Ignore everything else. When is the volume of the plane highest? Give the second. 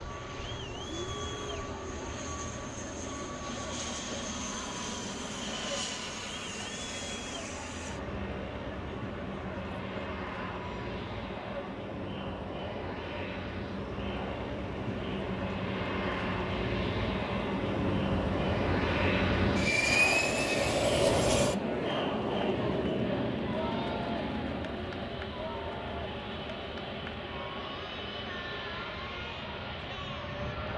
20 s.